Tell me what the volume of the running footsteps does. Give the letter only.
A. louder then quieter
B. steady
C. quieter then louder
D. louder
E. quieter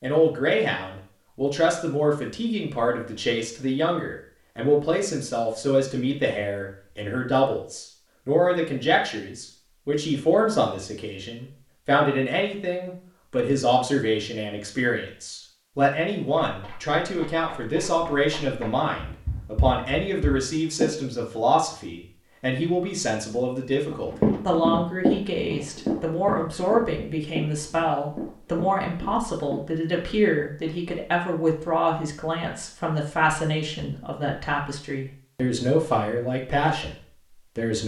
A.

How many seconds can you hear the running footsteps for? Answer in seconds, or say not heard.
11 s.